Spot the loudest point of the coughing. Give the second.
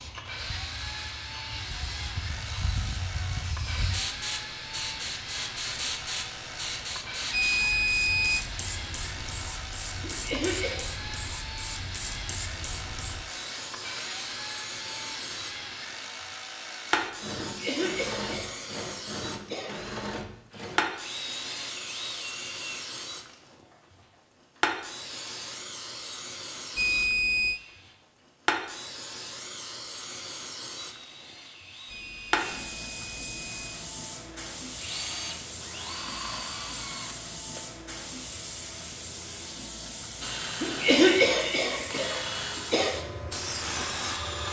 41 s.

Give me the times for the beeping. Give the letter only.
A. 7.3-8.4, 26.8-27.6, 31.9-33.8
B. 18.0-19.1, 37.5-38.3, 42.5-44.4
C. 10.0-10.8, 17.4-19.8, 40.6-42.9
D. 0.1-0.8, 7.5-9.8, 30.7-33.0
A.